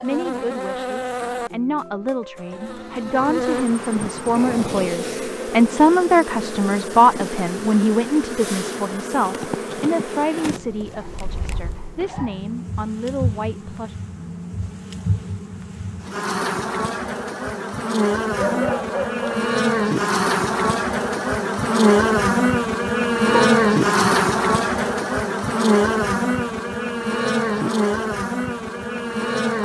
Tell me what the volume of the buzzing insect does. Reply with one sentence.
The volume of the buzzing insect goes up.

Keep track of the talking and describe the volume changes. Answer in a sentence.
The loudness of the talking goes up, then down.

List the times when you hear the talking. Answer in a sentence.
The talking can be heard from 0.0 to 13.9 s.